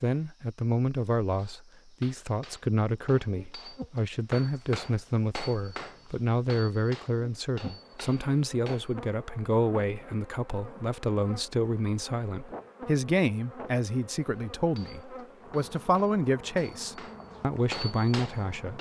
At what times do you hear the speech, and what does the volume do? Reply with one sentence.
The speech can be heard from 0.0 to 18.7 s, at a steady volume.